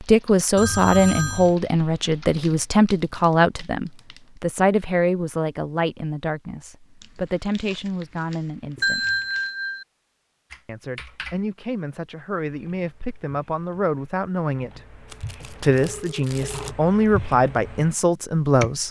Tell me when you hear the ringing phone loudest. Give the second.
9 s.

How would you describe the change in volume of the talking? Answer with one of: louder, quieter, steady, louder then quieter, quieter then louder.
quieter then louder.